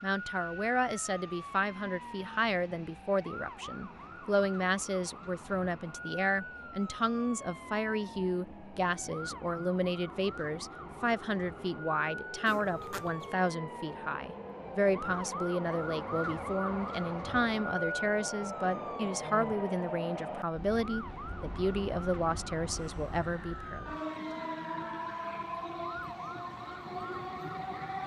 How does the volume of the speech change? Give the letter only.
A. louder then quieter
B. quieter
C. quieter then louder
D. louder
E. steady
E.